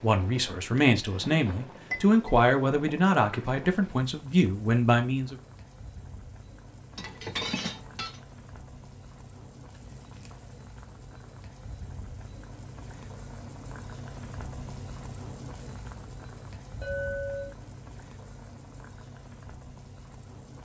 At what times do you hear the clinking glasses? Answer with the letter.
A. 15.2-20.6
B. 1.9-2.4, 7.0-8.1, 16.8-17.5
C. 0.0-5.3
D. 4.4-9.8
B.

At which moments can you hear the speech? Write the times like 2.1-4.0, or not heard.
0.0-5.3.